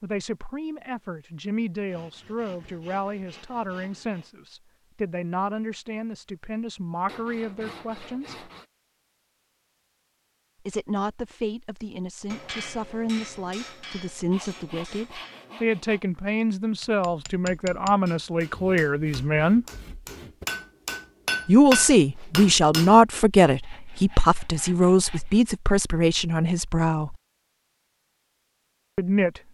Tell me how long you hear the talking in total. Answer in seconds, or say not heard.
24 s.